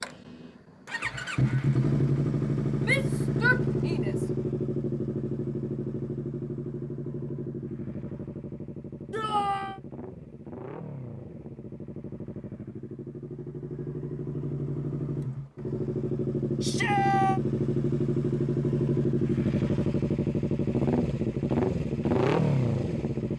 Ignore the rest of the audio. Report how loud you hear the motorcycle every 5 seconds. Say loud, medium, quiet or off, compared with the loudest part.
loud, medium, medium, loud, loud.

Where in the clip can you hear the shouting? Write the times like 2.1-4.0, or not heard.
2.8-4.2, 9.1-9.8, 16.6-17.4.